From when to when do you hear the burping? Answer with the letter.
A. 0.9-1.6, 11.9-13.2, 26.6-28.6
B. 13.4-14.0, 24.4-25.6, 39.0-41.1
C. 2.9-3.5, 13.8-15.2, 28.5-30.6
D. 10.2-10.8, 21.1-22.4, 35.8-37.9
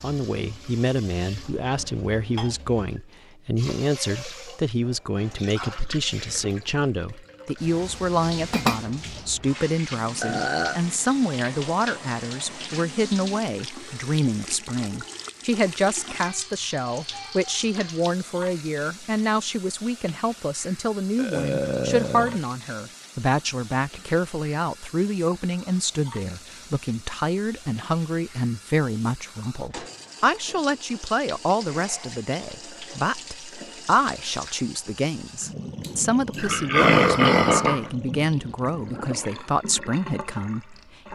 D.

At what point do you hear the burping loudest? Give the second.
37 s.